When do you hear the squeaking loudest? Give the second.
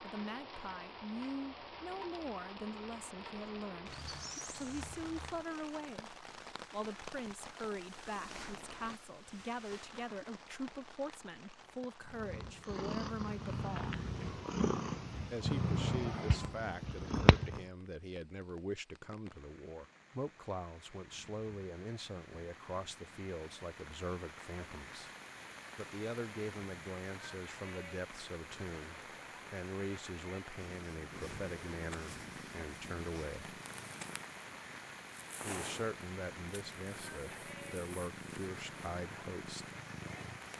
4 s.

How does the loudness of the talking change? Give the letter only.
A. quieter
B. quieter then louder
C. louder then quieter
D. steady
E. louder
D.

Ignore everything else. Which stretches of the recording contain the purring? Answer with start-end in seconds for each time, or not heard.
12.1-17.6, 30.5-40.5.